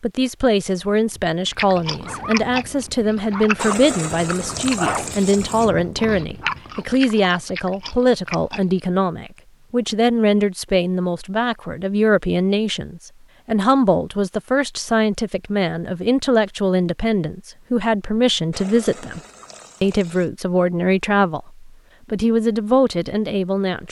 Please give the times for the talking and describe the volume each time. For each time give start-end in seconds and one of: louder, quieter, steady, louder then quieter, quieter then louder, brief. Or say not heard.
0.0-19.2 steady
19.8-23.8 quieter then louder.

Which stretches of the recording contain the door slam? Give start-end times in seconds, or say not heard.
not heard.